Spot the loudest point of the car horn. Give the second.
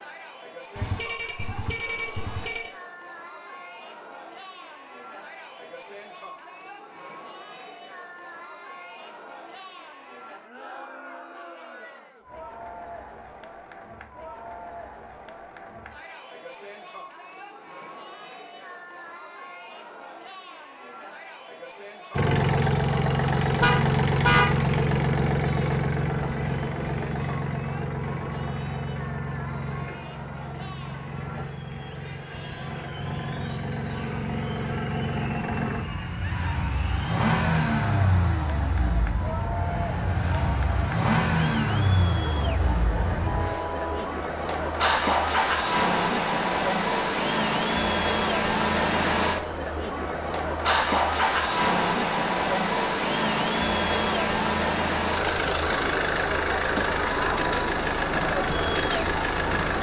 24 s.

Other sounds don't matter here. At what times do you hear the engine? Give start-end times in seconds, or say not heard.
22.1-59.7.